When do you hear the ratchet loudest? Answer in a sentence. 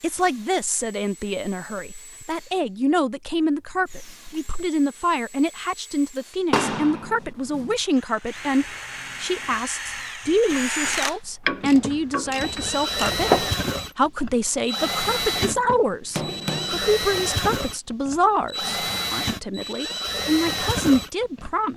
The volume of the ratchet peaks at 13 seconds.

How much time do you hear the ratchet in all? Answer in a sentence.
You can hear the ratchet for 2 seconds altogether.